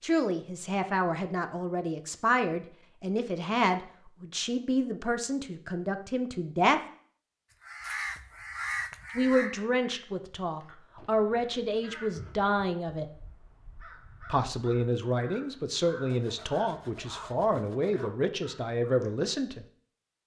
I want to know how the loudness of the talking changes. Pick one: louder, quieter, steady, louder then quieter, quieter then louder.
steady.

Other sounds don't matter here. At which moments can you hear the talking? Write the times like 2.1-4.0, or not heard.
0.0-6.8, 9.2-13.1, 14.2-19.6.